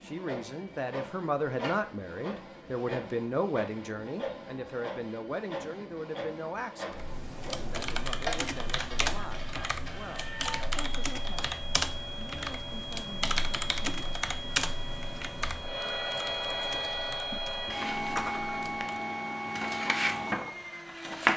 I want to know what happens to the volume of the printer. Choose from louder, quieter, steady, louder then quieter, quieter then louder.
louder.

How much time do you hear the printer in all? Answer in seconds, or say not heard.
21 s.